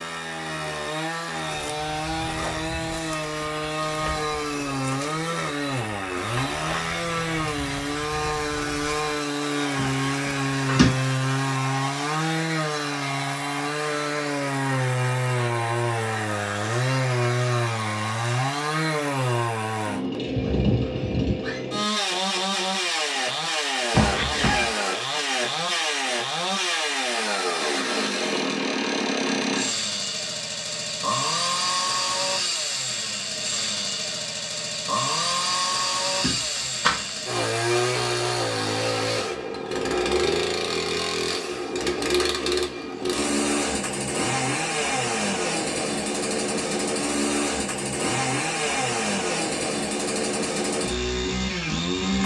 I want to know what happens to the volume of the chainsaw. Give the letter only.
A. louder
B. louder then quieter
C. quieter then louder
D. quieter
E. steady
E.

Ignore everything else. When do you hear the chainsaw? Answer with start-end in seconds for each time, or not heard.
0.0-52.2.